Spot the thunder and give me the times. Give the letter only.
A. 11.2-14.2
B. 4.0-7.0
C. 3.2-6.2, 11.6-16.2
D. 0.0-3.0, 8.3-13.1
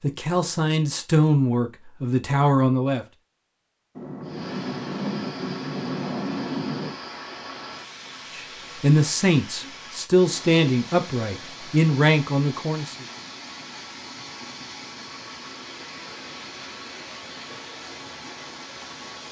B.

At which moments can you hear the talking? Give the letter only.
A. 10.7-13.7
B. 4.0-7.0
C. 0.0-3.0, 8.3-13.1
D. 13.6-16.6
C.